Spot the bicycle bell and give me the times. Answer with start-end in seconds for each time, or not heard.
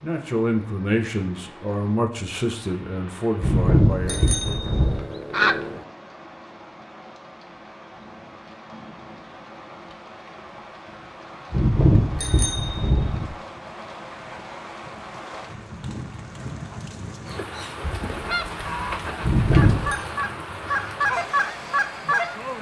3.4-5.0, 11.5-13.2, 19.2-20.0.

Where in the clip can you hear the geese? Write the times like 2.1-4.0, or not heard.
4.0-5.8, 17.8-22.5.